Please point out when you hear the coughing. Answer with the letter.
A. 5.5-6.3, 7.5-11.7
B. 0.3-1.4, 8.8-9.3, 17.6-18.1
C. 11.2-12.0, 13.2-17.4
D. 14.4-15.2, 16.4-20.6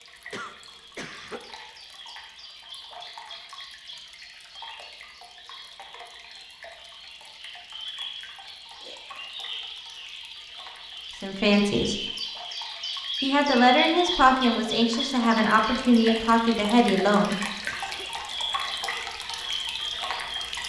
B.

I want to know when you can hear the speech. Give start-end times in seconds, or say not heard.
11.2-12.0, 13.2-17.4.